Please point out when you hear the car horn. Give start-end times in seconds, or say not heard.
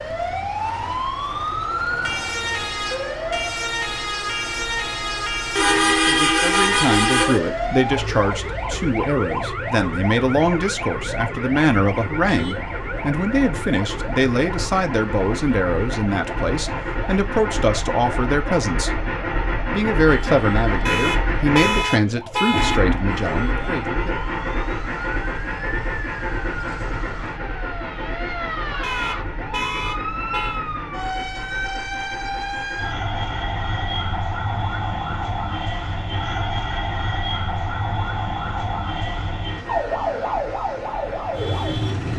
5.5-7.4, 20.9-22.9, 28.8-30.6.